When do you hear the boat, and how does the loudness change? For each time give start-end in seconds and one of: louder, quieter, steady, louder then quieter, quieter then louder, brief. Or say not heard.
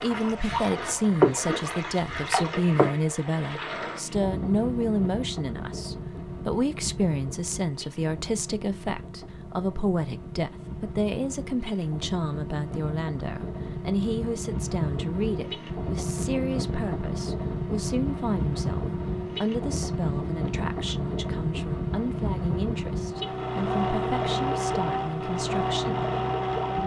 0.0-26.8 quieter then louder.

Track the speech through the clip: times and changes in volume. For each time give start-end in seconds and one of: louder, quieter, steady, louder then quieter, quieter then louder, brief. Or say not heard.
0.0-26.1 quieter.